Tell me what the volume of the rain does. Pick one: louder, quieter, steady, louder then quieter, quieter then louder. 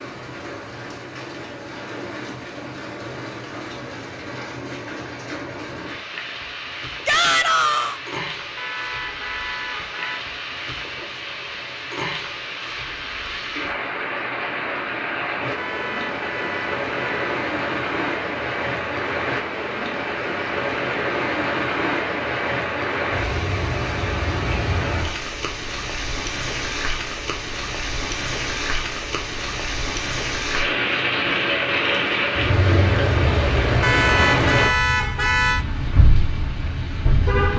louder.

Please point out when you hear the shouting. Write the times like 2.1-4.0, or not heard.
7.0-8.0.